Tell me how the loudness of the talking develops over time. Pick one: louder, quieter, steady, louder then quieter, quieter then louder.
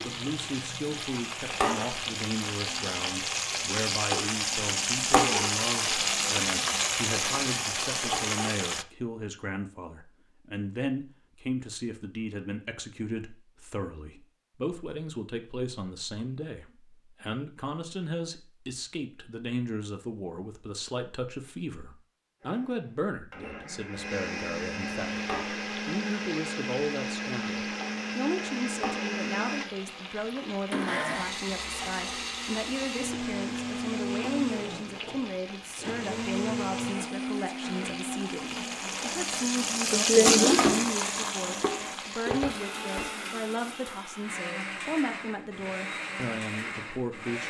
steady.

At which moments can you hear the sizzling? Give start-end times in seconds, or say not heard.
0.0-8.8, 25.0-43.0.